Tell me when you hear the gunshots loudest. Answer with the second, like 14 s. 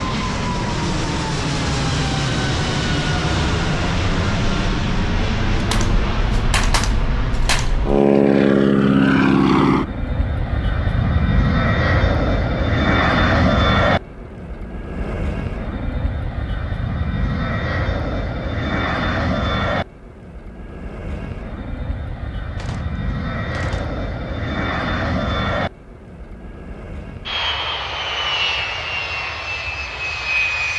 7 s.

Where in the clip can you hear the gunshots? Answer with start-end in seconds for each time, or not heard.
5.5-7.9, 22.6-23.9.